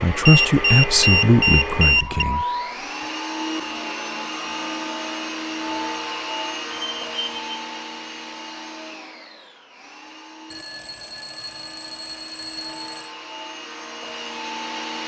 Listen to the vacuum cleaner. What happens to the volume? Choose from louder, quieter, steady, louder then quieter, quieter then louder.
quieter then louder.